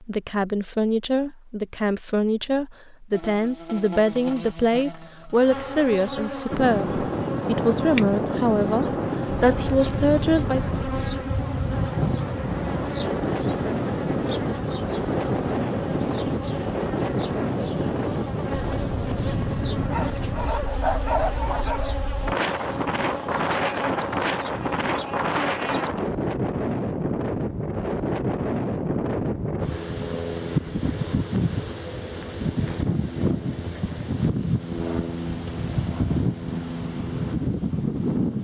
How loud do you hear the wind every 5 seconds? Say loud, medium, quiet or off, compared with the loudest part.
off, loud, loud, loud, loud, loud, loud, loud.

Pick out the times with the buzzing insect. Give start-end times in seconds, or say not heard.
3.1-25.9.